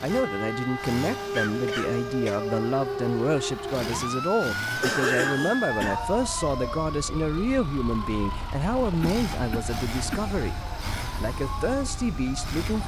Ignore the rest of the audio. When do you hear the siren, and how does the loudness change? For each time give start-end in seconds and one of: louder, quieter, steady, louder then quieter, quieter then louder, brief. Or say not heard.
0.0-12.8 quieter.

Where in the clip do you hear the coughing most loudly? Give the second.
5 s.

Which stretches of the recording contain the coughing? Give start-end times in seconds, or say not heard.
1.3-2.4, 4.8-6.0, 8.8-10.3.